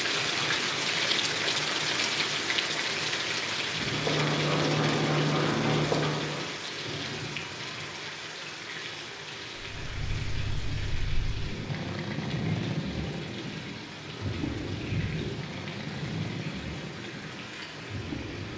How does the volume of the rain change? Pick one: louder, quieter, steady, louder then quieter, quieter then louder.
quieter.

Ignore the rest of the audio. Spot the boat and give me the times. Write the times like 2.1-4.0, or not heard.
3.6-6.5, 9.6-18.5.